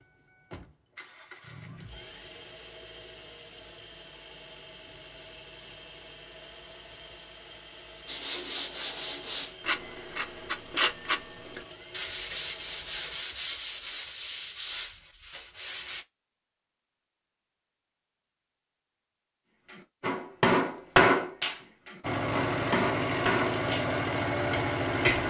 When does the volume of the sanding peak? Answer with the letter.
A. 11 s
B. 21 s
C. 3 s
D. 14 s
A.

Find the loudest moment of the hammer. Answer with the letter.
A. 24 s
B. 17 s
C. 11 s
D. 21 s
D.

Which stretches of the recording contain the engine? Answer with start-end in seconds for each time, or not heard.
0.0-13.2, 22.0-25.2.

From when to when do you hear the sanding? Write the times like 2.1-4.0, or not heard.
8.1-16.1.